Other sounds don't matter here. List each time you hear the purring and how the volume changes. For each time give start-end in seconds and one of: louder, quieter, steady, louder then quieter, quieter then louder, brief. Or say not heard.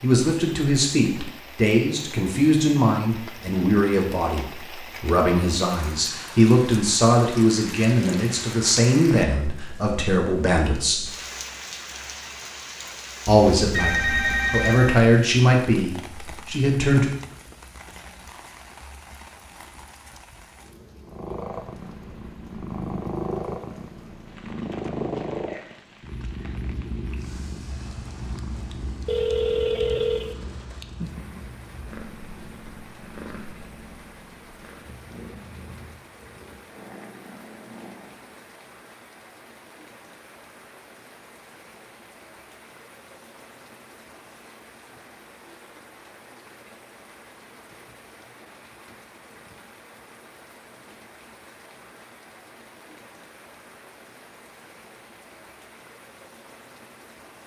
21.0-38.5 quieter.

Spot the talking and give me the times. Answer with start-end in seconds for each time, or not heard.
0.0-11.0, 13.2-17.1.